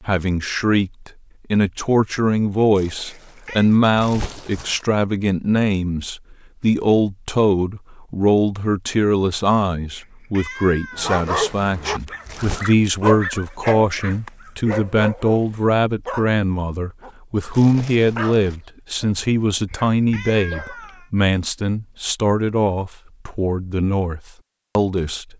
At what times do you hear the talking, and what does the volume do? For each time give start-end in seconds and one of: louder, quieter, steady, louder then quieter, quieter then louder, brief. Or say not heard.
0.1-25.3 steady.